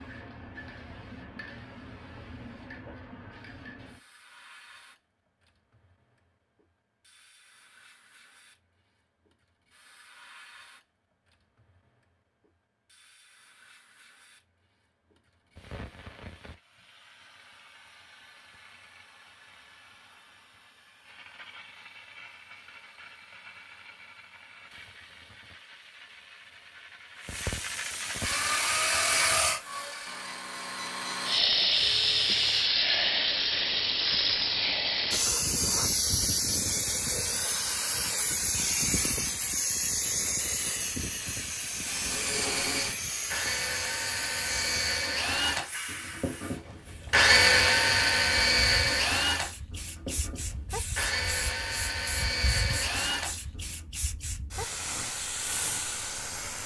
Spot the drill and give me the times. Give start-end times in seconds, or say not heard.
28.1-32.7, 41.8-53.9.